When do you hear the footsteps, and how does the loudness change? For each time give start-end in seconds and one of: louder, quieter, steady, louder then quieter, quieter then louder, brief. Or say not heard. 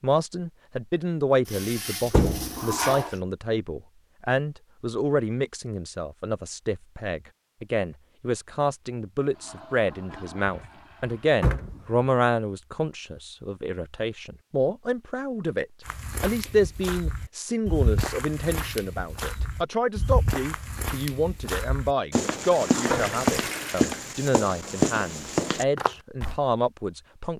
15.8-26.4 louder.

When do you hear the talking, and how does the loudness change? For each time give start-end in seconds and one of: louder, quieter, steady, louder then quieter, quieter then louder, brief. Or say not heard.
0.0-27.3 steady.